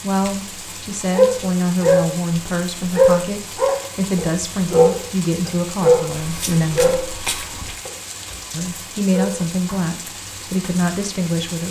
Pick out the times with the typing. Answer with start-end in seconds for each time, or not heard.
not heard.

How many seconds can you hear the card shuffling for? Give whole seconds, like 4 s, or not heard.
2 s.